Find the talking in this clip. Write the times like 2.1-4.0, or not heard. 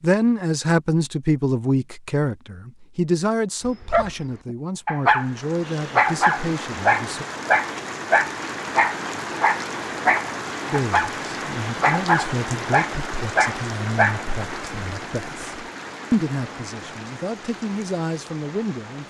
0.0-7.2, 10.7-19.0.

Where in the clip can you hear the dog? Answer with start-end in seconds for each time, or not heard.
3.6-14.2.